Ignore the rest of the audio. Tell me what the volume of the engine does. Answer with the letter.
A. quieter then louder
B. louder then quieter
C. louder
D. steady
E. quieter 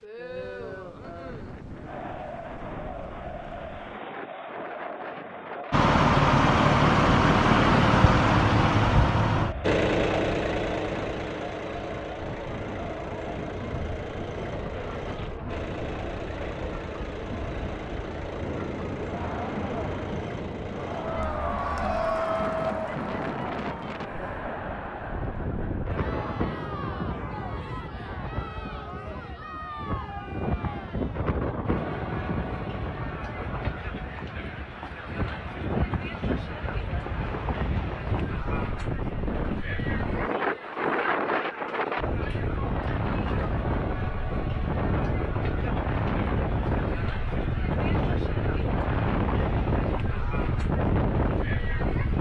E.